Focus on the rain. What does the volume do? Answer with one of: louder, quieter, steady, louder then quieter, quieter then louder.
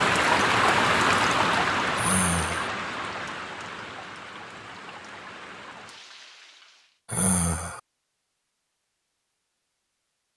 quieter.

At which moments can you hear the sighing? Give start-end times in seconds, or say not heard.
1.9-2.7, 7.0-7.8.